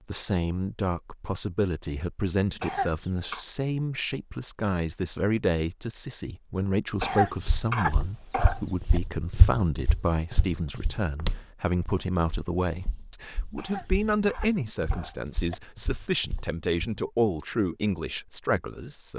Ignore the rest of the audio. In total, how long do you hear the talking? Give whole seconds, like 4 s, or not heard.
19 s.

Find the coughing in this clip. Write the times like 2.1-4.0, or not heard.
2.6-3.5, 7.0-9.0, 13.6-15.6.